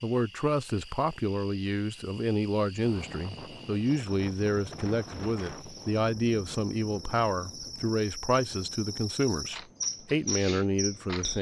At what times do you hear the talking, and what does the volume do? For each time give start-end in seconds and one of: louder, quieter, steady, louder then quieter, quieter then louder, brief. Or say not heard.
0.0-11.3 steady.